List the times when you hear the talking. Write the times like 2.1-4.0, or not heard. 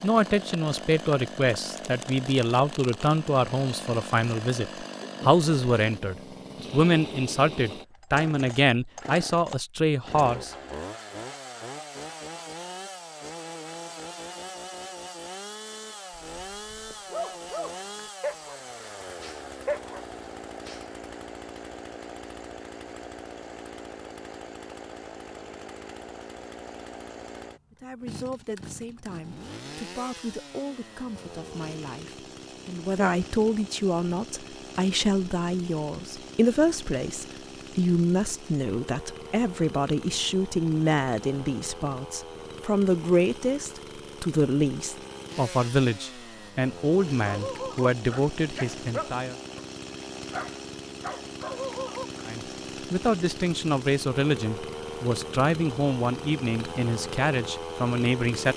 0.0-10.5, 27.7-49.4, 52.2-58.5.